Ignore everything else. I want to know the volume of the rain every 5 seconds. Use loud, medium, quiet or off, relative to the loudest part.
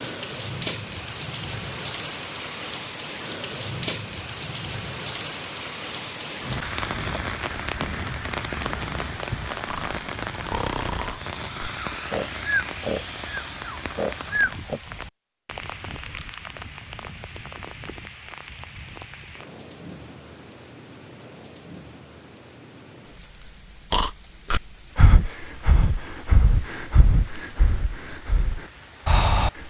loud, loud, loud, medium, quiet, quiet.